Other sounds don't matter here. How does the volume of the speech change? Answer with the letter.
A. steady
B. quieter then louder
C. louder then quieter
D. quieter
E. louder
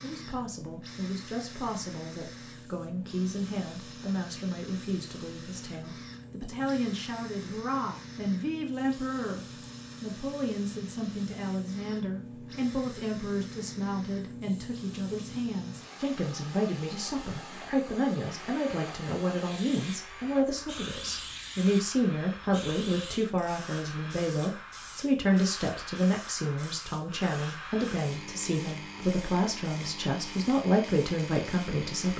E.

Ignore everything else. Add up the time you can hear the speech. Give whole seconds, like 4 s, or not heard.
32 s.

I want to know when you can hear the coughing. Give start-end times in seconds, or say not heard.
not heard.